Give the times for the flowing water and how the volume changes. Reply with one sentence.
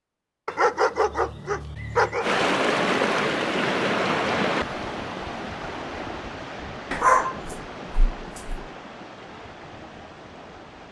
The flowing water can be heard from 2.2 to 10.8 s, getting quieter.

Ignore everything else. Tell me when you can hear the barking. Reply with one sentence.
You can hear the barking from 0.5 to 2.2 s and from 6.9 to 8.6 s.